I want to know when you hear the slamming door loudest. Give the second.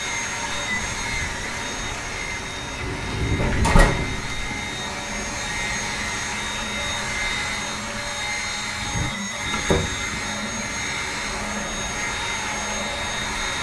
4 s.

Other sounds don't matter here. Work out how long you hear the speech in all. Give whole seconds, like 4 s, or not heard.
not heard.